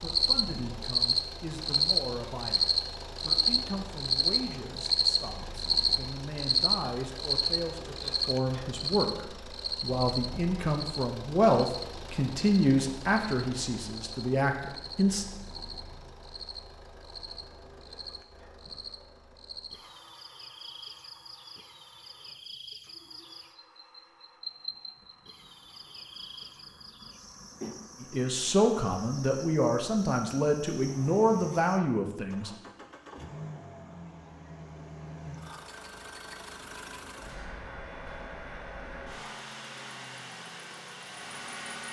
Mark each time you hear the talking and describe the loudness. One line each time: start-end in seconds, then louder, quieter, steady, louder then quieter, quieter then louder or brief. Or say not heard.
0.0-15.2 louder
28.0-32.5 steady.